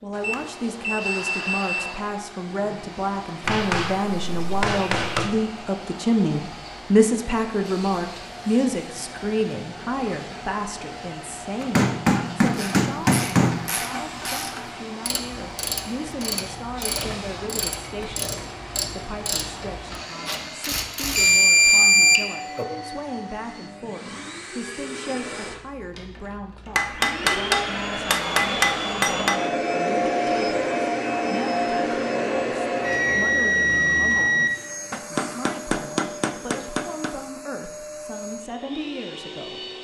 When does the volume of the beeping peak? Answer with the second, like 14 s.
22 s.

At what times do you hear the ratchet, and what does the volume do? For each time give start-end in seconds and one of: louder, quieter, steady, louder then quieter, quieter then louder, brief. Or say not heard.
12.5-21.5 steady.